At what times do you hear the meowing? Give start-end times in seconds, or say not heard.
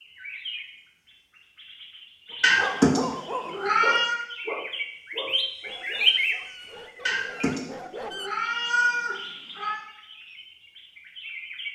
2.4-4.2, 7.0-9.8.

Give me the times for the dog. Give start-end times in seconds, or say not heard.
2.3-8.3.